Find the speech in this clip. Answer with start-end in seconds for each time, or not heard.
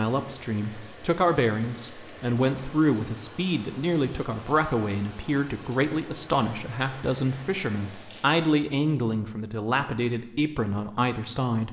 0.0-11.6.